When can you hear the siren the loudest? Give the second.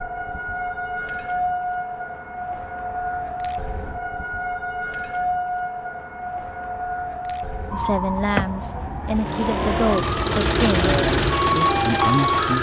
12 s.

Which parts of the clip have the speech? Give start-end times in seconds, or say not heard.
7.7-12.5.